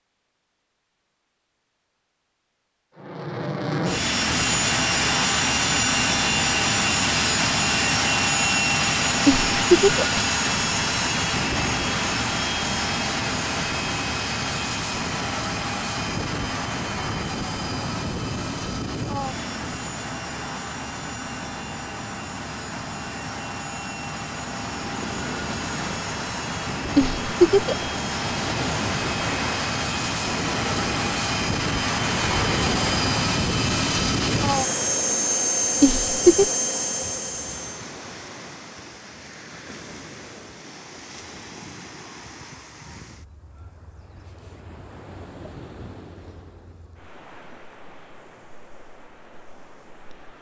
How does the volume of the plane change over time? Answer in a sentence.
The volume of the plane goes down, then up.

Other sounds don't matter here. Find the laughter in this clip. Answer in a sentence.
The laughter can be heard from 9.2 to 10.1 s, from 26.9 to 27.9 s and from 35.8 to 36.5 s.